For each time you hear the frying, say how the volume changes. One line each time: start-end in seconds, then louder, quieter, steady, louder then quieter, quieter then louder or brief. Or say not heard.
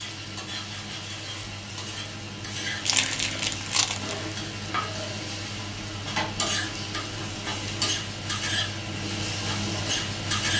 0.0-10.5 louder.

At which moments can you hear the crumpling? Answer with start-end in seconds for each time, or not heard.
2.8-4.2.